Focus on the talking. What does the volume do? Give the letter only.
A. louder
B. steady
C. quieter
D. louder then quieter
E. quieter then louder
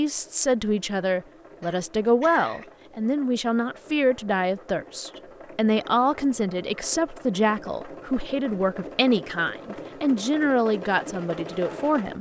B.